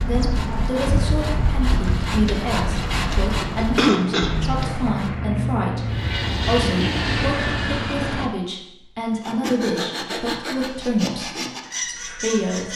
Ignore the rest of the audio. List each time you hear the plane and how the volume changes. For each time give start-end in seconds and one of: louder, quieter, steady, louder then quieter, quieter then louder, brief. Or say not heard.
0.0-8.3 louder.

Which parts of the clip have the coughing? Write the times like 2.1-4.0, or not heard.
3.5-4.7.